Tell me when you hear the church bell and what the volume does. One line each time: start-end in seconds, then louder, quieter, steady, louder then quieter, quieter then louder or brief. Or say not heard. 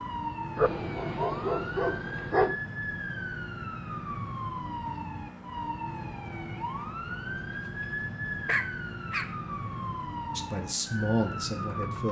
not heard.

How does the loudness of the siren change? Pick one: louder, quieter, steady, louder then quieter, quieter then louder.
steady.